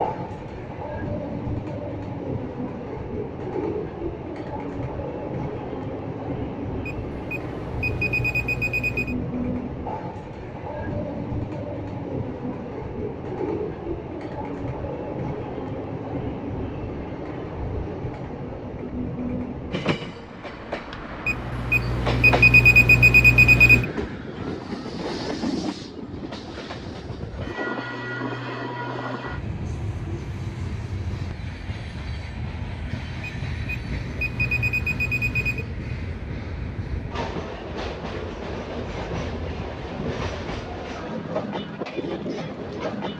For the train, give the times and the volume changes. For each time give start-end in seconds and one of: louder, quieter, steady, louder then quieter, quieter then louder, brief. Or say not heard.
0.0-43.1 steady.